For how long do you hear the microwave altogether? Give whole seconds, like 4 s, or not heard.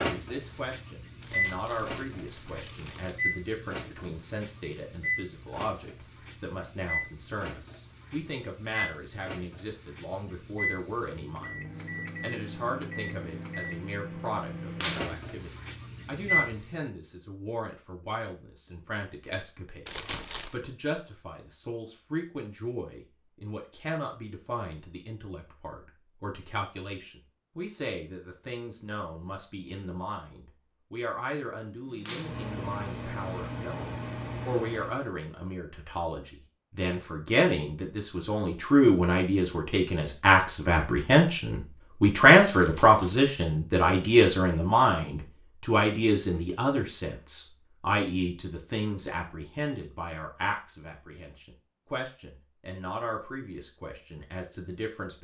20 s.